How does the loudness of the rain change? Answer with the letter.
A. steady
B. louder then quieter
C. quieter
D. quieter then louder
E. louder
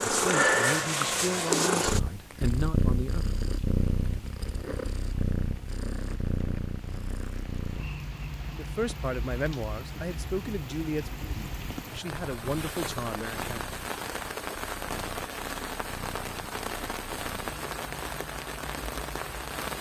E.